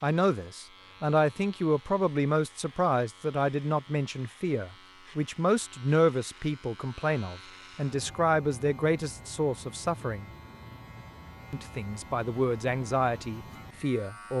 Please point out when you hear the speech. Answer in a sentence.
You can hear the speech from 0.0 to 10.3 s and from 11.5 to 14.3 s.